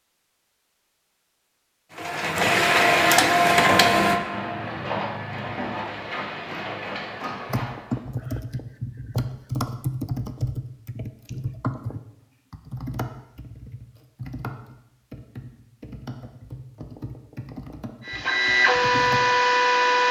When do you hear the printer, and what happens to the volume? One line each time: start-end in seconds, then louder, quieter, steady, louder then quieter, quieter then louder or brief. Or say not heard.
1.9-8.0 quieter
18.1-20.0 brief.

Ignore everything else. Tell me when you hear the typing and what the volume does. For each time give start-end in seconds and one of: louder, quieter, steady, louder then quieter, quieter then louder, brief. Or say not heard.
7.5-19.2 quieter.